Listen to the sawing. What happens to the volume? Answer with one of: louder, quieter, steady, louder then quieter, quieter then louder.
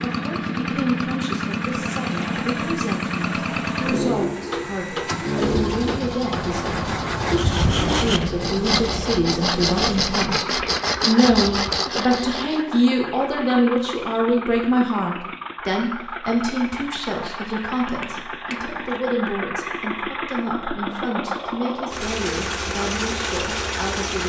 louder.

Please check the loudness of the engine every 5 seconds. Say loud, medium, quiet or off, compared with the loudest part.
loud, loud, medium, medium, loud.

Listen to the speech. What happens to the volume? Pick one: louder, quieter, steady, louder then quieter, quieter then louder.
louder then quieter.